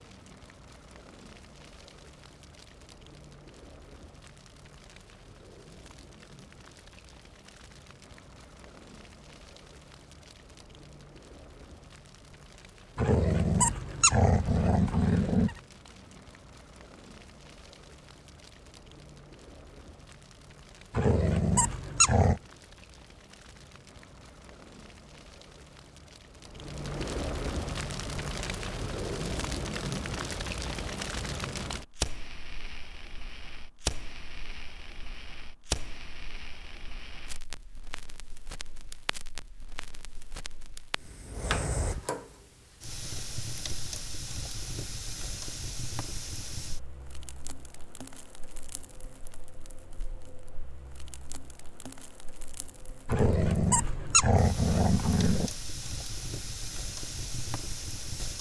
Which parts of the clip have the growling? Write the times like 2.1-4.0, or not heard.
12.9-15.6, 20.9-22.4, 53.0-55.5.